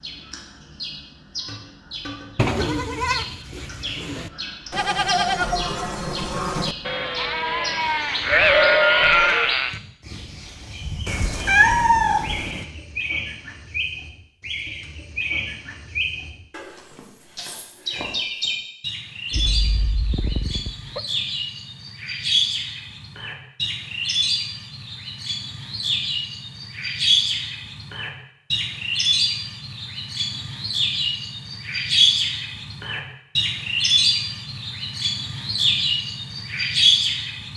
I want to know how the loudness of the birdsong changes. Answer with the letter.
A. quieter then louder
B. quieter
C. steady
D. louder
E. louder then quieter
D.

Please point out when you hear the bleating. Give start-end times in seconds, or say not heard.
2.4-9.8.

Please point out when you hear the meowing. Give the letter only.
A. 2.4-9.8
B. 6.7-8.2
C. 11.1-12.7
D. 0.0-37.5
C.